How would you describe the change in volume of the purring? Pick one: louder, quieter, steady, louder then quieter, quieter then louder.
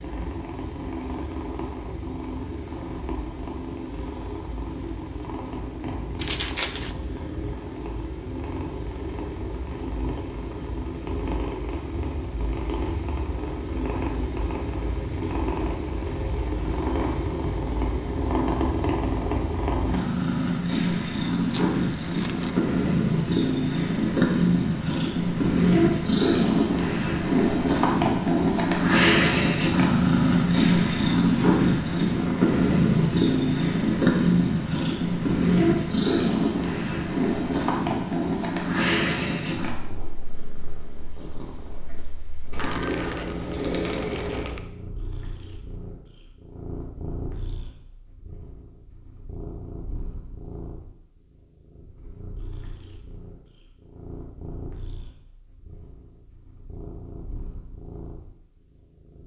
louder then quieter.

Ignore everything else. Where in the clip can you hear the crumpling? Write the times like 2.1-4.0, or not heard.
6.2-7.0, 21.5-22.6, 42.6-44.6.